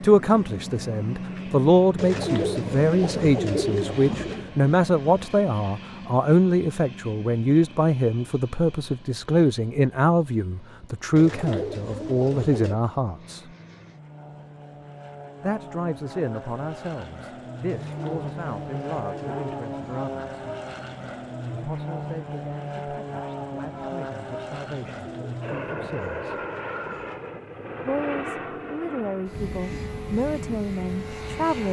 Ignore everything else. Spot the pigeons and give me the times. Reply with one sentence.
The pigeons can be heard from 1.9 to 4.5 s, from 11.2 to 12.8 s, from 17.6 to 20.0 s and from 24.8 to 27.2 s.